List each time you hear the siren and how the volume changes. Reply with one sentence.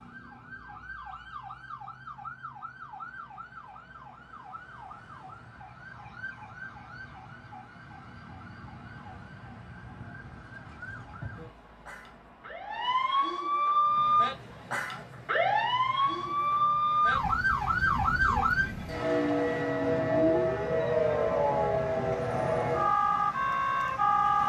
The siren can be heard from 0.0 to 24.4 s, getting louder.